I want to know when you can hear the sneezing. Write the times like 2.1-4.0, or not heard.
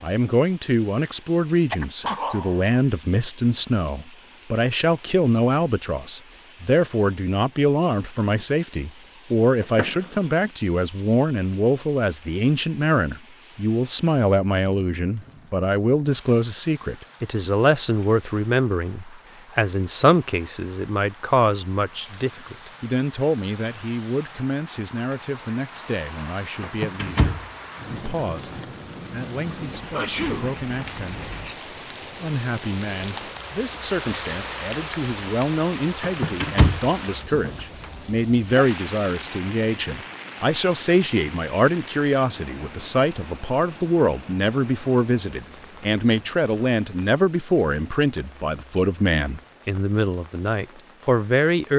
1.7-2.8, 29.9-30.6.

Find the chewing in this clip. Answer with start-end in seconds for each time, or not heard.
not heard.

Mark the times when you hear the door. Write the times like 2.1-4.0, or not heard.
9.6-10.3, 26.6-28.2, 36.0-37.9.